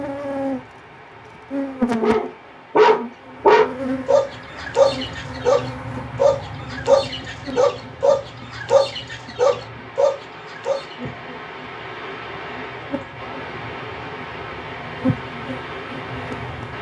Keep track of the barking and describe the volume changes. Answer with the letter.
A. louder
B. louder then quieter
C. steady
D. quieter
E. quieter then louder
D.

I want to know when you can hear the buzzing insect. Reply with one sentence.
You can hear the buzzing insect from 0.0 to 16.7 s.